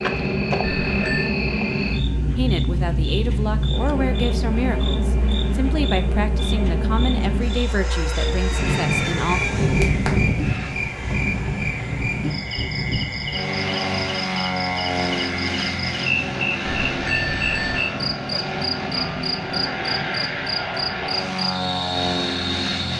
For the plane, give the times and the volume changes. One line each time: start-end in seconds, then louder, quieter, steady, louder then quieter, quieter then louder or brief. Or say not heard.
0.0-22.9 steady.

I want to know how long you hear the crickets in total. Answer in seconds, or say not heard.
23 s.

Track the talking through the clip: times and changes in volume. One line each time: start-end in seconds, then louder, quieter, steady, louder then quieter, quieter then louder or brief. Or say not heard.
2.4-9.4 steady.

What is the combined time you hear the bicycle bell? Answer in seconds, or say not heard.
2 s.